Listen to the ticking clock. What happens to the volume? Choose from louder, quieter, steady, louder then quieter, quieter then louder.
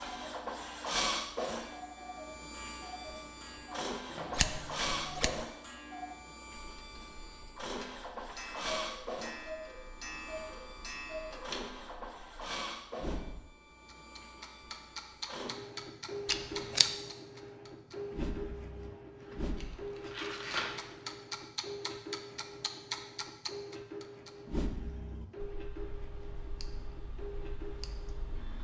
louder then quieter.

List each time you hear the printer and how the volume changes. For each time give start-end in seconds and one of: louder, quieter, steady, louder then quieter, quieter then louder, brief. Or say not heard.
0.0-28.5 quieter.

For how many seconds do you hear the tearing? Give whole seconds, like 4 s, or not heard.
2 s.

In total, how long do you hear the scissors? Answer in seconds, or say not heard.
3 s.